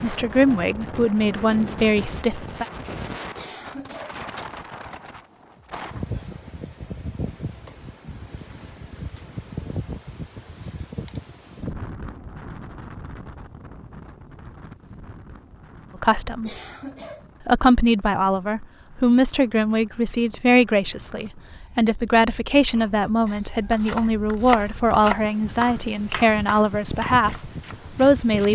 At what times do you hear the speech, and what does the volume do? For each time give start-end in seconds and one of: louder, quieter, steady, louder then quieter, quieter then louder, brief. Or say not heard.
0.0-2.6 brief
16.0-16.5 brief
17.4-28.5 steady.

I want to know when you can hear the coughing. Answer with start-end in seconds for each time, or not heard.
3.4-4.2, 16.4-17.3.